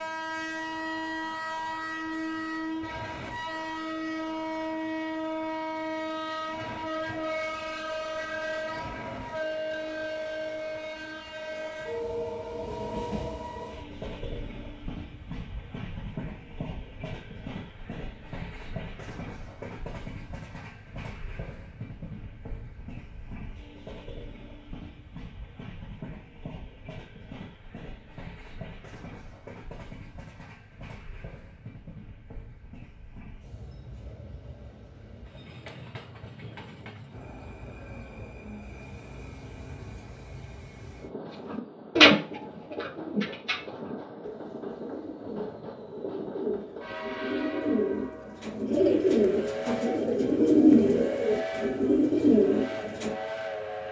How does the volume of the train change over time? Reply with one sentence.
The volume of the train goes down, then up.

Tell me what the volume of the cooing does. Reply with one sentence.
The loudness of the cooing goes down, then up.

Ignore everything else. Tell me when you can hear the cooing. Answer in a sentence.
The cooing can be heard from 41.5 to 53.1 s.